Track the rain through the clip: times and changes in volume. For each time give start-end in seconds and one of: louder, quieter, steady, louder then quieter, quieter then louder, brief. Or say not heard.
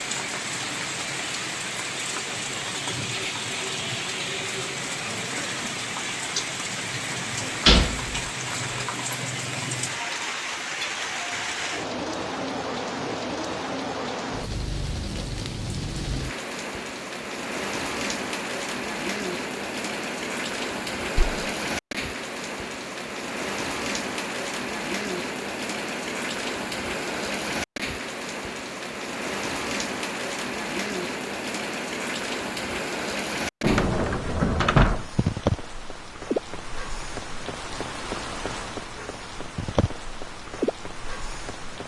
0.0-41.8 steady.